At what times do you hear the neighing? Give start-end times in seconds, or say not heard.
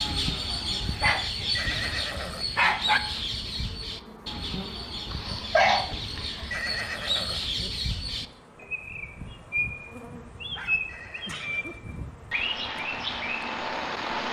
1.6-2.6, 6.5-7.7, 10.8-11.8.